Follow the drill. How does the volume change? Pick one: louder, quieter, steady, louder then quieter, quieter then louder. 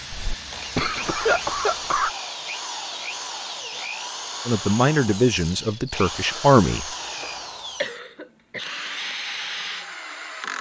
steady.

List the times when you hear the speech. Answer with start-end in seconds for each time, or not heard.
4.5-6.8.